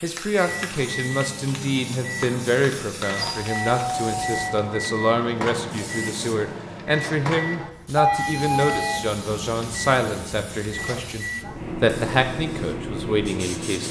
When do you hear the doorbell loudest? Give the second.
8 s.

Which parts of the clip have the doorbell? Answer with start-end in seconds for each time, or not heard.
3.2-4.5, 8.0-9.1.